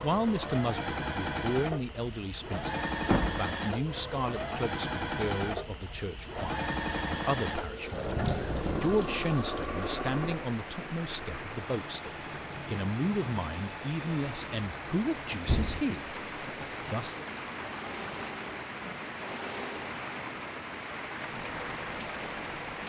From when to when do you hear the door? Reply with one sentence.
The door can be heard from 3.0 to 3.5 s, from 7.9 to 9.2 s and from 15.4 to 15.8 s.